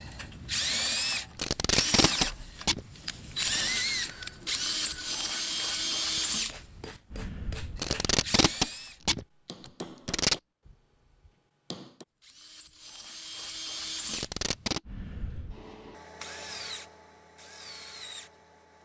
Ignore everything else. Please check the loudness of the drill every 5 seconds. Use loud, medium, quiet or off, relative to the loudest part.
loud, loud, medium, quiet.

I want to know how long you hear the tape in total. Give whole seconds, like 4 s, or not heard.
5 s.